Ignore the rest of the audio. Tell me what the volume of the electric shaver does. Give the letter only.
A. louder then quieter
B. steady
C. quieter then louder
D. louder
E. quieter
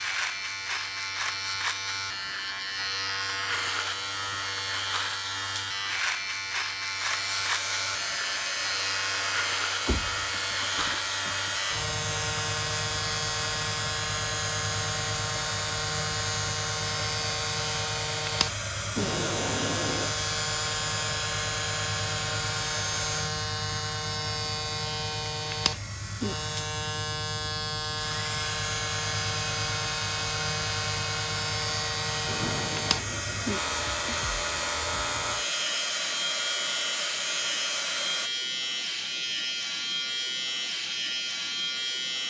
B.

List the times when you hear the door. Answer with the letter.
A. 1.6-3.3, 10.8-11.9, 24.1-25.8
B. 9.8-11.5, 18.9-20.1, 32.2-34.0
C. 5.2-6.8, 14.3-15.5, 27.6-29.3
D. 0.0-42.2
B.